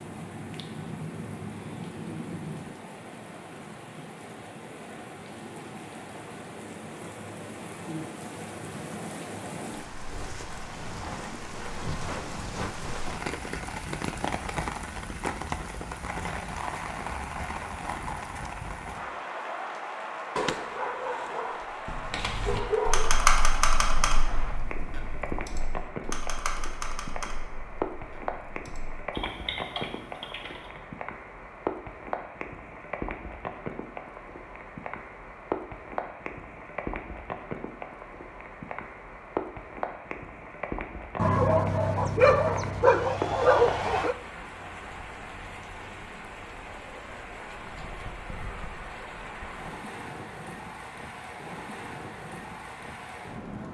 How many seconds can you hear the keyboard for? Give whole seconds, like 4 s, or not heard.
9 s.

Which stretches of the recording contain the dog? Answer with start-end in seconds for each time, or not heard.
20.4-23.1, 41.1-44.1.